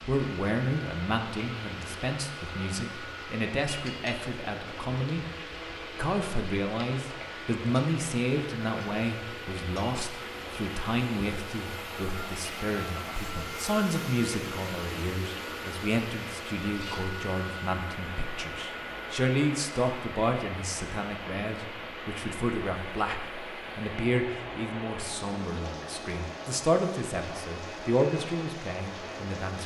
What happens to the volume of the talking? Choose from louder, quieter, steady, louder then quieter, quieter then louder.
steady.